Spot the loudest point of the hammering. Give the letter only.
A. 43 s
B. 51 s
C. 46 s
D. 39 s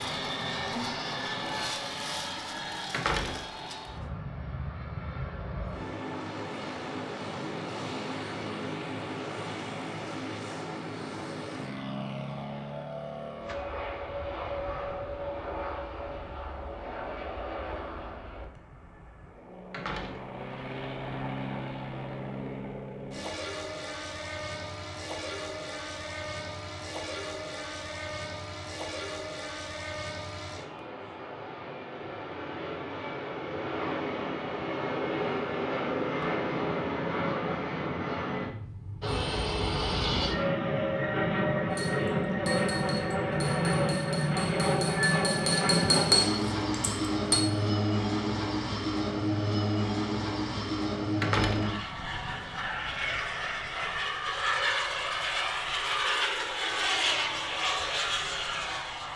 C.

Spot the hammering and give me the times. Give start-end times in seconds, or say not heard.
41.7-47.5.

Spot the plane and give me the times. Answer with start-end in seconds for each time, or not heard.
0.0-59.1.